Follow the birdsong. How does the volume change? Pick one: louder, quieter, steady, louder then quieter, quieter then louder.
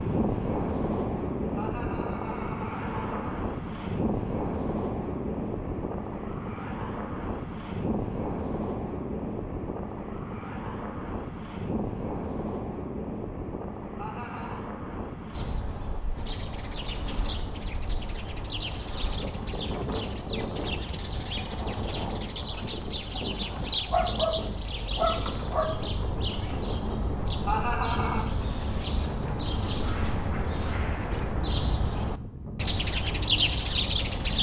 louder.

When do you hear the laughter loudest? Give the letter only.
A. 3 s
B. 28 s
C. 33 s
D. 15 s
B.